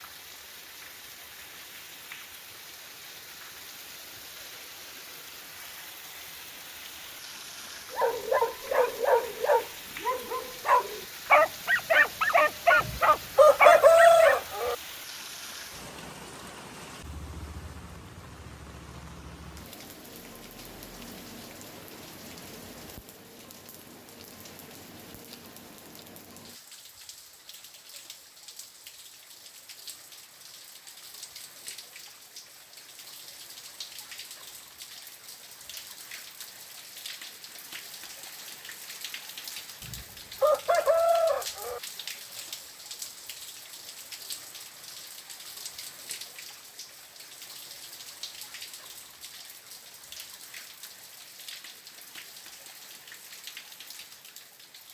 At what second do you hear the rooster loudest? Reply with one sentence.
The volume of the rooster peaks at 14 seconds.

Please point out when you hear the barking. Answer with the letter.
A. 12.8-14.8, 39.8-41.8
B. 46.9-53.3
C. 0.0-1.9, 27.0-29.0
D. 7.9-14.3
D.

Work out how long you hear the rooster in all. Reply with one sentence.
The rooster can be heard for 4 seconds in total.